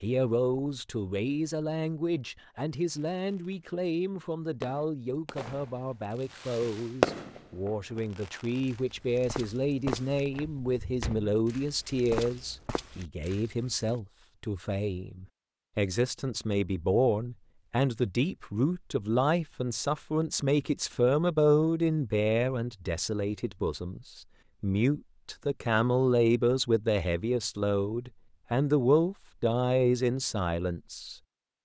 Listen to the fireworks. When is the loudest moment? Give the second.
7 s.